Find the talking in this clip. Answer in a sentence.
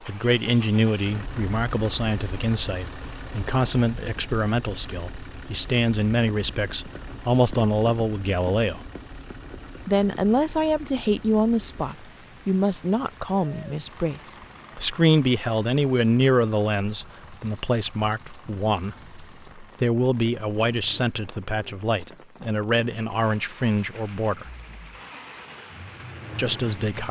The talking can be heard from 0.1 to 8.8 s, from 9.8 to 24.4 s and from 26.4 to 27.0 s.